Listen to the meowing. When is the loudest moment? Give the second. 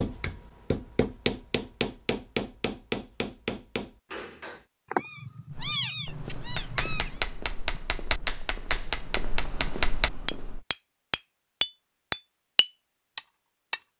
6 s.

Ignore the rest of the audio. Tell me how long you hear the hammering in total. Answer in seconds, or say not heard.
12 s.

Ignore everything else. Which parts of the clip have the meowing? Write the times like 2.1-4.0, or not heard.
4.9-7.2.